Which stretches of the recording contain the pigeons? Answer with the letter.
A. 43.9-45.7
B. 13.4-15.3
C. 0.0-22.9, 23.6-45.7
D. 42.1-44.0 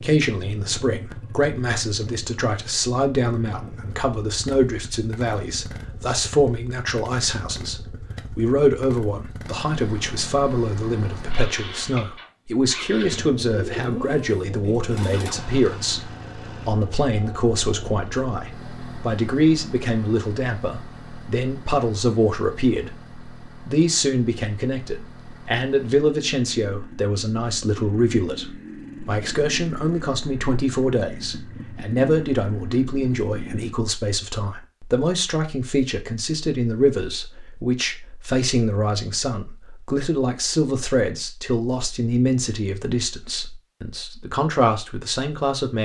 B.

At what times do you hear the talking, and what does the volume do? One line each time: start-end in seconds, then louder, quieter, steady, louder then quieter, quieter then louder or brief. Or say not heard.
0.0-22.9 steady
23.6-45.7 steady.